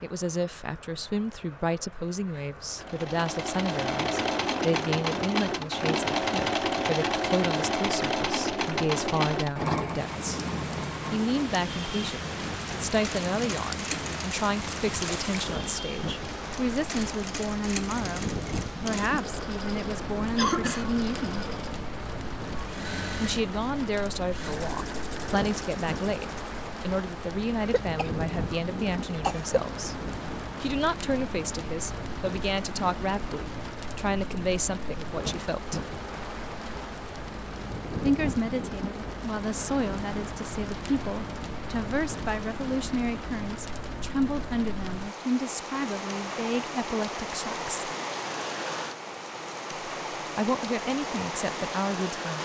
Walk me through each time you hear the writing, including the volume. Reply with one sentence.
The writing can't be heard in this clip.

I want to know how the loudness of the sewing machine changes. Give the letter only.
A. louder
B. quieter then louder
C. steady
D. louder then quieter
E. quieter
E.